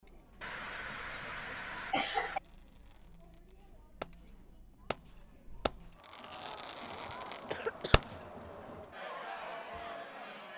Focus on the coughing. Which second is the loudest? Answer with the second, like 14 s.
2 s.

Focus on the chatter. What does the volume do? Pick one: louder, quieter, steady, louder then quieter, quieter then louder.
louder.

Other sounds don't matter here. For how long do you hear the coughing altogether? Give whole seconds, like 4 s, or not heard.
3 s.